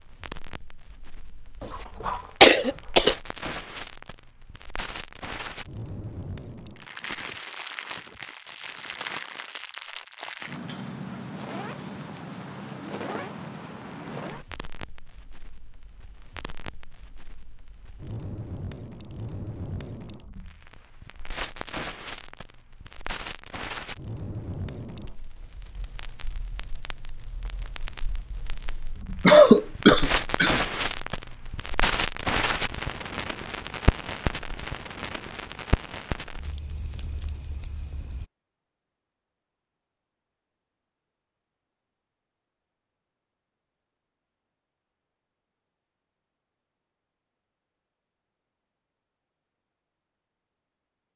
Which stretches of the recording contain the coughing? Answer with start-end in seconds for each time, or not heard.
1.6-3.1, 29.2-30.6.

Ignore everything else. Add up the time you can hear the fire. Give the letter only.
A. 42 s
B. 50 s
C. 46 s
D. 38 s
D.